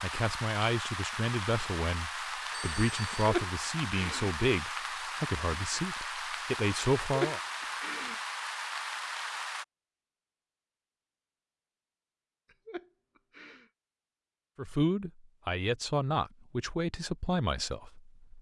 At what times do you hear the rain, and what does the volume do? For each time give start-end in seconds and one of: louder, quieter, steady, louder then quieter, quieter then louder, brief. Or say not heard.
0.0-9.7 steady.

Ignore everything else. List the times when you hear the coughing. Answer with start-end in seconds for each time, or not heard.
3.2-4.3, 7.1-8.2, 12.5-13.7.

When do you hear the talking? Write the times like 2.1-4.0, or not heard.
0.0-7.4, 14.6-18.3.